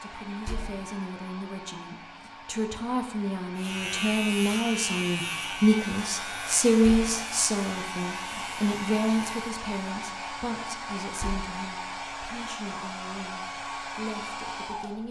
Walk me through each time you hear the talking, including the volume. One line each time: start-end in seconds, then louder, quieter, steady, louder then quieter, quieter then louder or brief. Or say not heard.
0.0-15.0 louder then quieter.